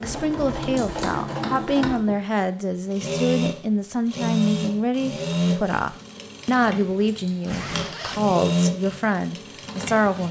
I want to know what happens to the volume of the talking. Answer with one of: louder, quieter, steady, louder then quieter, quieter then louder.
steady.